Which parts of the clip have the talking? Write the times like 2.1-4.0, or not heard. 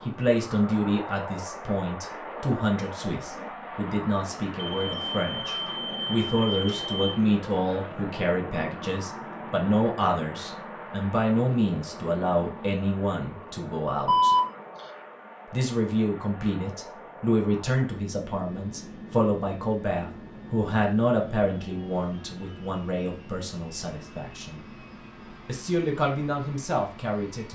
0.0-14.3, 15.5-24.6, 25.4-27.5.